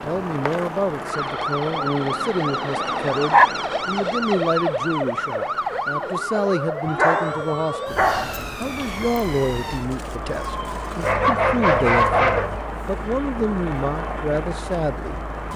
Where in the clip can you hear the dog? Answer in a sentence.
You can hear the dog from 1.9 to 3.5 s, from 6.8 to 8.4 s and from 11.0 to 12.6 s.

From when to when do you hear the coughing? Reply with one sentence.
The coughing can't be heard in this clip.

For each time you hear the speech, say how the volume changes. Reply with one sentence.
The speech can be heard from 0.1 to 15.5 s, at a steady volume.